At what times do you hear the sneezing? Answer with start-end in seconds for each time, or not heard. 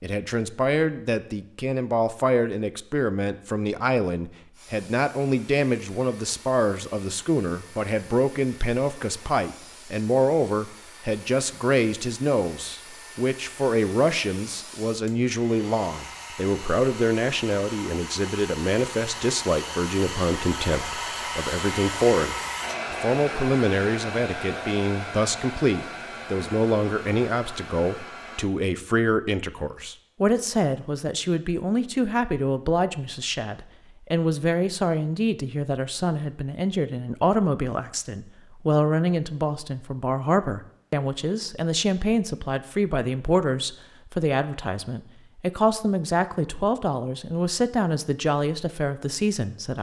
not heard.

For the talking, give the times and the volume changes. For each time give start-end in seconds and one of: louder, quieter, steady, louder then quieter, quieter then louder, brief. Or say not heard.
0.0-49.7 steady.